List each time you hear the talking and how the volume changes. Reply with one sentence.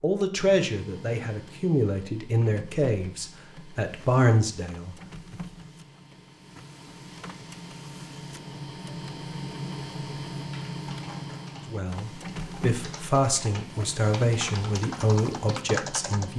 You can hear the talking from 0.0 to 5.3 s, getting quieter then louder; and from 11.7 to 16.3 s, at a steady volume.